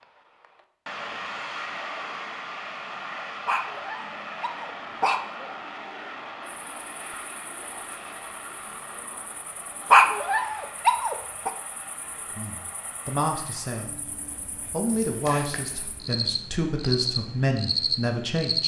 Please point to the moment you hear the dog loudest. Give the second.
10 s.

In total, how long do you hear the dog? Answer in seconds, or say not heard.
3 s.